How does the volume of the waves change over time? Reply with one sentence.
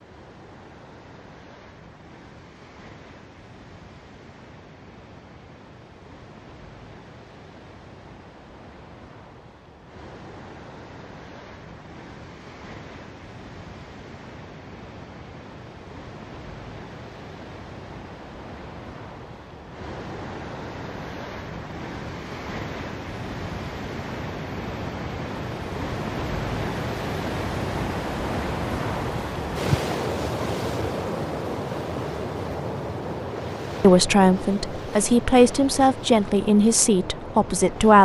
The loudness of the waves goes up.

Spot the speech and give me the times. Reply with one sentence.
The speech can be heard from 33.8 to 38.0 s.